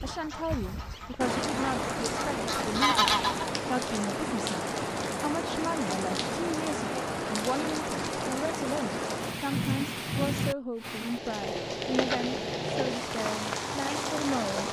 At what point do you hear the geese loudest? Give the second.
3 s.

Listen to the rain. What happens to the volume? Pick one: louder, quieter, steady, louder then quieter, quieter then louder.
steady.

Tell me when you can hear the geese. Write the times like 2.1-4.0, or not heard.
0.0-3.5.